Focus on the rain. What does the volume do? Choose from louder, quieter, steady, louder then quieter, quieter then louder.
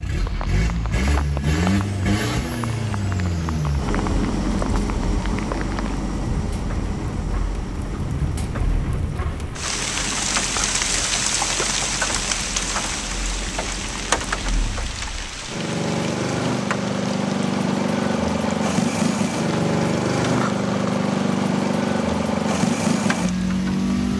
louder then quieter.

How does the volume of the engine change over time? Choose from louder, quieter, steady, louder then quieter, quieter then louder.
quieter then louder.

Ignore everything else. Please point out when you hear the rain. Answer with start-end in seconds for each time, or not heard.
0.1-24.1.